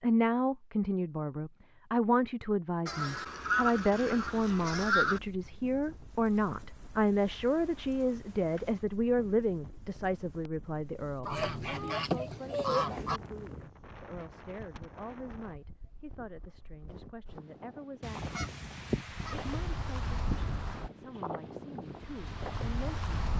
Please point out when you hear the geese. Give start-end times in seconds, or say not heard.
2.9-5.2, 11.2-13.2, 18.0-19.7.